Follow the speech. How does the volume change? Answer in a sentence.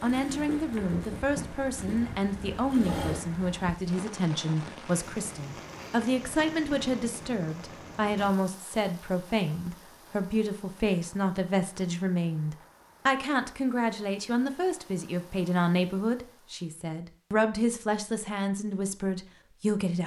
The loudness of the speech stays about the same.